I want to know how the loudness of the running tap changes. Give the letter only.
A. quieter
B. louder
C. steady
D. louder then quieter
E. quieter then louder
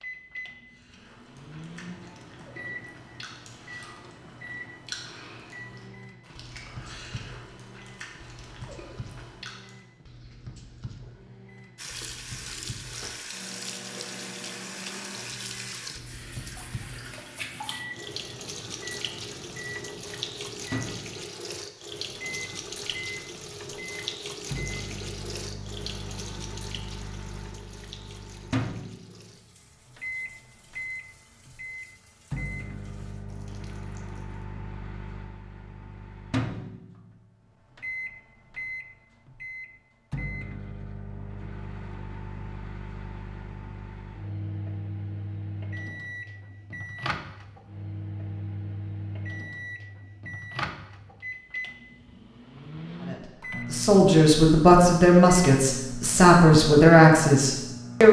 A.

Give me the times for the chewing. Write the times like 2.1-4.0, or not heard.
0.7-9.8.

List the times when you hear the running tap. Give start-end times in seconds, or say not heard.
11.8-34.5.